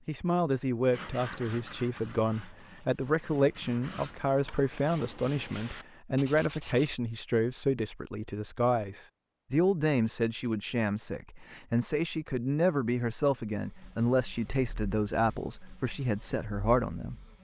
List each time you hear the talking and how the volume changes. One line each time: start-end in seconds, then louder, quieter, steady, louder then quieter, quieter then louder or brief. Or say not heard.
0.1-17.1 steady.